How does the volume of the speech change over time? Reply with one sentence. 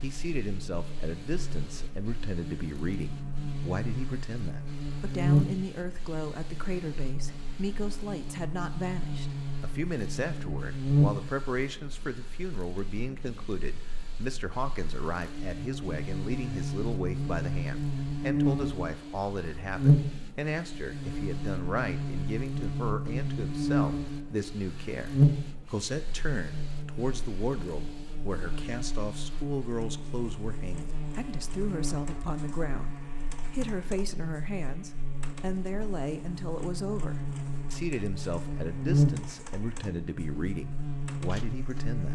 The loudness of the speech stays about the same.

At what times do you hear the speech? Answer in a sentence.
The speech can be heard from 0.0 to 42.1 s.